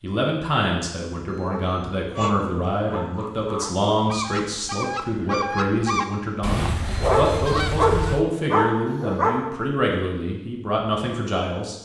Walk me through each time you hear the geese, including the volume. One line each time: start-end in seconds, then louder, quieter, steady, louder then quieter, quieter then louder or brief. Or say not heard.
2.1-8.2 louder.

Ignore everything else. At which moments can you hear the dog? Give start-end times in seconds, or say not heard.
1.3-3.8, 6.9-9.5.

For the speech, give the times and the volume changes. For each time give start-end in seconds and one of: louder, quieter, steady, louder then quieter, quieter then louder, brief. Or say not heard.
0.0-11.8 steady.